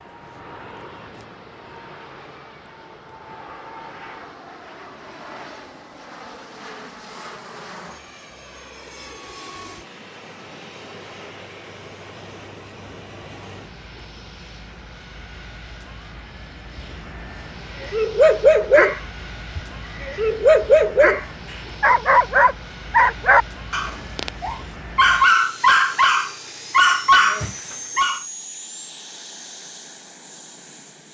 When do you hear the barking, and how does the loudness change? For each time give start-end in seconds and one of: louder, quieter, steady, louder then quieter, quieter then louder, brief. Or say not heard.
17.8-28.2 steady.